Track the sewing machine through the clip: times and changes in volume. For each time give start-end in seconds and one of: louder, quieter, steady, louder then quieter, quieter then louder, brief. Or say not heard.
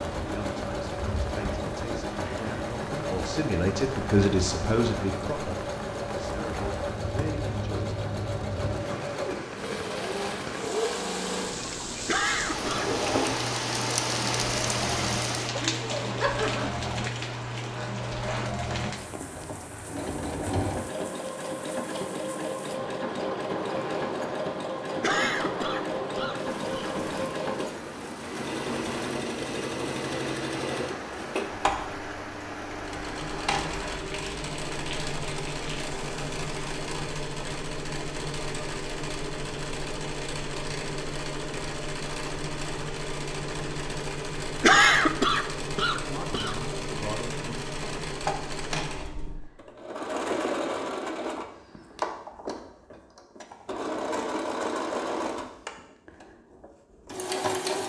0.0-57.8 steady.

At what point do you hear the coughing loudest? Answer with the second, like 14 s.
45 s.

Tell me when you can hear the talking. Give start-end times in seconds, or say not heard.
0.1-8.0, 46.0-48.0.